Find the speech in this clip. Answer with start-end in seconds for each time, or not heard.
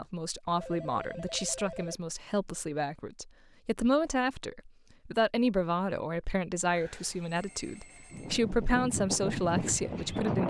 0.0-10.4.